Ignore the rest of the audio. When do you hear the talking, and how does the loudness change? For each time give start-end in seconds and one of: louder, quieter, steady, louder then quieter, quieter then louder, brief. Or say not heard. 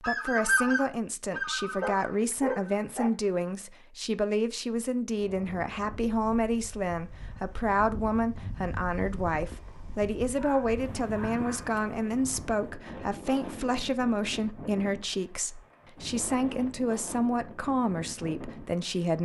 0.0-19.1 steady.